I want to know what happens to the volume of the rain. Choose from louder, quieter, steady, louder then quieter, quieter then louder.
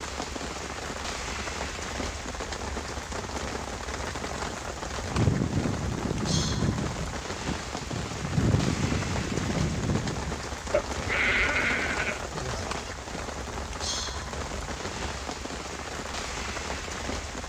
steady.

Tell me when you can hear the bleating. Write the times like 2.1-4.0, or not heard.
5.1-12.9.